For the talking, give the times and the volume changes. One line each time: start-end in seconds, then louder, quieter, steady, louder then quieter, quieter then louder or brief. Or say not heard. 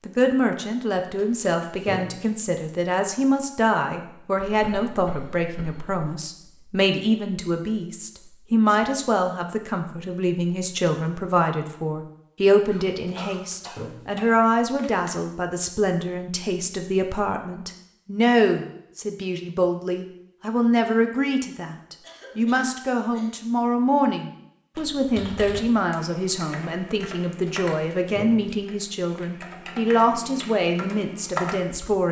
0.1-32.0 steady.